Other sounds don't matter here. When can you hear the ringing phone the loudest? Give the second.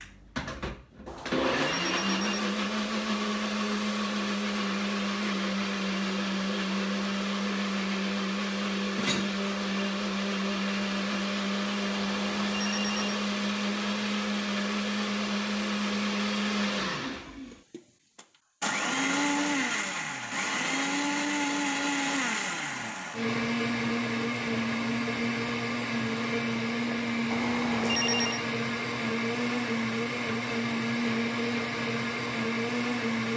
28 s.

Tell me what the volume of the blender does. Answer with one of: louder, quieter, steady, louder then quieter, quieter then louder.
steady.